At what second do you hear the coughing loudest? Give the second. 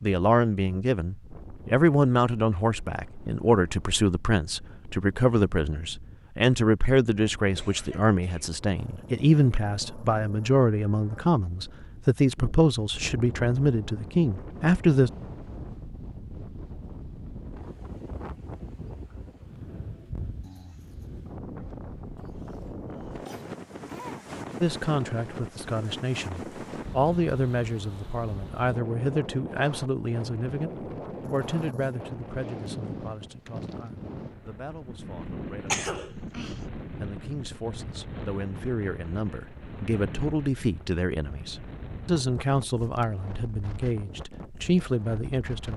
36 s.